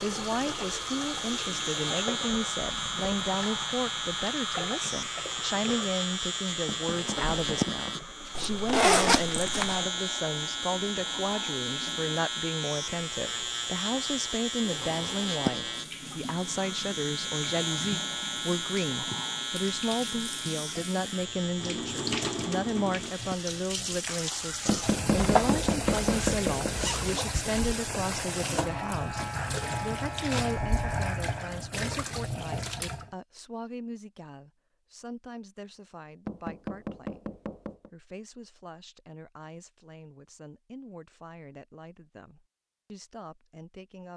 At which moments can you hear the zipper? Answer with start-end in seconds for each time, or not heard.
8.3-9.8, 25.1-27.2.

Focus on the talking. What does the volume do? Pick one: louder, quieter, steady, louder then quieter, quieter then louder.
quieter.